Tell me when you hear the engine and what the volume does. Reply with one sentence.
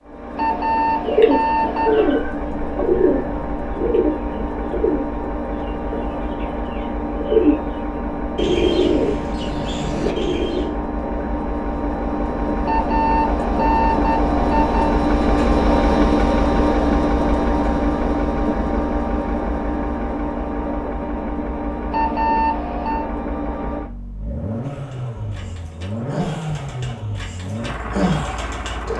The engine can be heard from 0.0 to 28.9 s, getting louder then quieter.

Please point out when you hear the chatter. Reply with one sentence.
You can't hear the chatter here.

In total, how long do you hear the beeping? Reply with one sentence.
You can hear the beeping for 5 seconds altogether.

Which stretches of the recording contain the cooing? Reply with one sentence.
You can hear the cooing from 1.0 to 10.8 s and from 24.9 to 28.9 s.